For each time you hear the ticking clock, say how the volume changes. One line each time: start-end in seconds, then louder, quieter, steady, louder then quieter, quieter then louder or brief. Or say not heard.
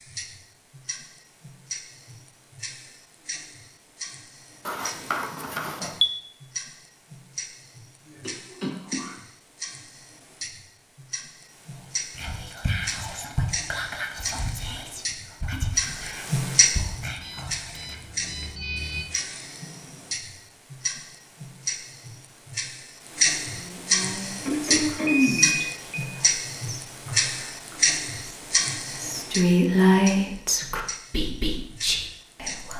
0.0-32.7 louder.